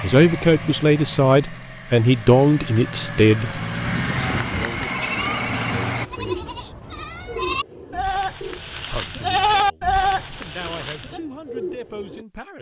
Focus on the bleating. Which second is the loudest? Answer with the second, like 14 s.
10 s.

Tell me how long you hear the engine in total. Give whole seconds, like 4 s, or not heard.
6 s.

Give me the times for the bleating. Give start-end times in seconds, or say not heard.
3.9-11.2.